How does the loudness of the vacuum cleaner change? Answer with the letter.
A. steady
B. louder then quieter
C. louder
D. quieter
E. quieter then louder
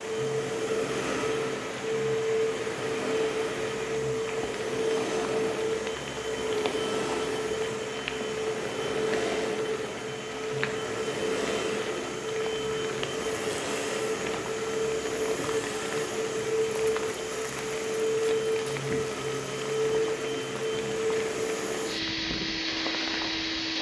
A.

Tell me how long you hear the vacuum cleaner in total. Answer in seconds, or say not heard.
24 s.